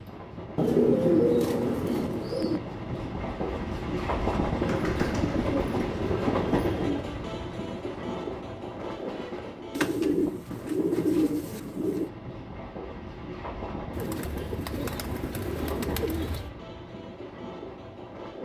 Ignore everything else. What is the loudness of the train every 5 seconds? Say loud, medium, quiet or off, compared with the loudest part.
loud, loud, medium, medium.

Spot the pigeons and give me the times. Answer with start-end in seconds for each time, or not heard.
0.6-2.6, 4.7-7.0, 9.8-12.1, 13.9-16.5.